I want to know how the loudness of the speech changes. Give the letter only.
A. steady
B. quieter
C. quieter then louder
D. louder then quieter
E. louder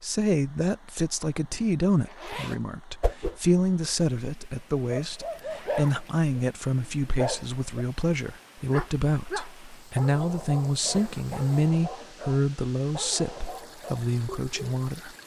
A.